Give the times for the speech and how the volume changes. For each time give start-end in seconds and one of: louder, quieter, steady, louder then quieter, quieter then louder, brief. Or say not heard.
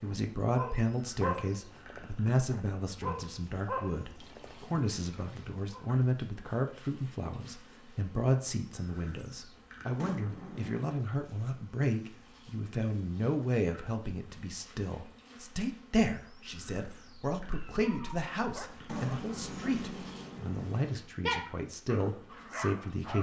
0.0-23.1 steady.